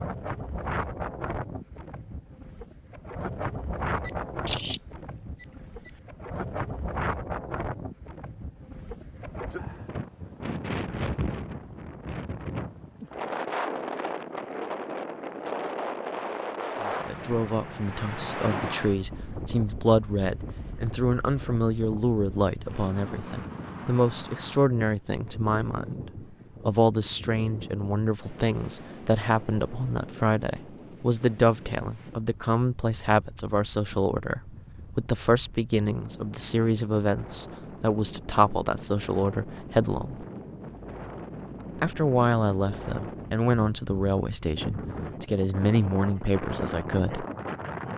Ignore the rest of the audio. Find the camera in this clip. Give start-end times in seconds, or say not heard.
4.0-5.9.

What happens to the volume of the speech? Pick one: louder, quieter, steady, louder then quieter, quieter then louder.
steady.